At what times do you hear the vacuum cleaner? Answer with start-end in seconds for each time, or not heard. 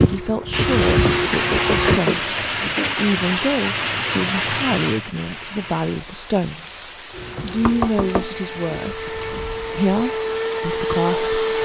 0.0-2.0, 7.1-11.6.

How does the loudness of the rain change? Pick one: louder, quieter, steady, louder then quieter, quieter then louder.
quieter.